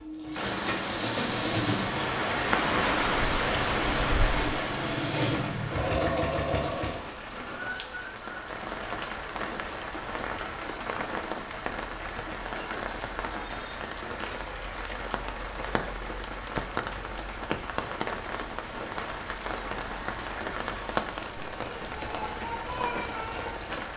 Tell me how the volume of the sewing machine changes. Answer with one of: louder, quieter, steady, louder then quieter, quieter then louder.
quieter then louder.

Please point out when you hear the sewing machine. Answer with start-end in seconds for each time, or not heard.
0.0-7.0.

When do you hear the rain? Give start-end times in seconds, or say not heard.
0.0-23.9.